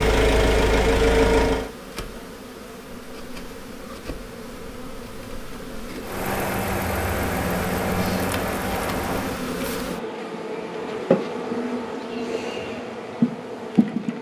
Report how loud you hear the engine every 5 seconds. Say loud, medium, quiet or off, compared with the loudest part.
loud, medium, off.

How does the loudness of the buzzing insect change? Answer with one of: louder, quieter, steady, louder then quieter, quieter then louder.
louder.